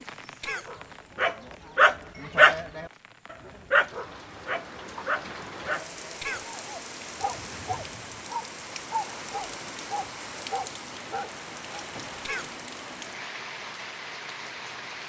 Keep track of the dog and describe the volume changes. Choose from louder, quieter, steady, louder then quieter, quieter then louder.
quieter.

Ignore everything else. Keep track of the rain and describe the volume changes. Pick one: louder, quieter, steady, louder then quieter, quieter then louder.
louder.